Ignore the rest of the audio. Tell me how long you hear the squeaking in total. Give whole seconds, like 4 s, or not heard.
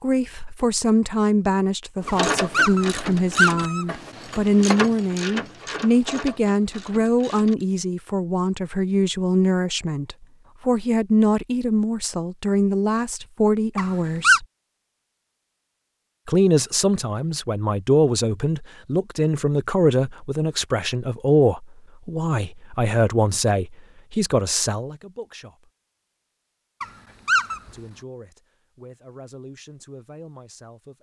3 s.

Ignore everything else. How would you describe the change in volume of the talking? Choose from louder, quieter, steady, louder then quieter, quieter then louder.
quieter.